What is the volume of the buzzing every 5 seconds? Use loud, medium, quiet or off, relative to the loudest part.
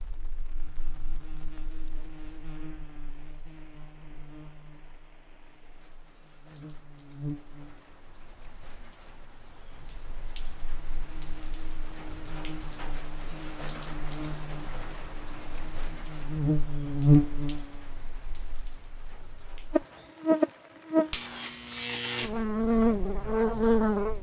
quiet, quiet, quiet, loud, loud.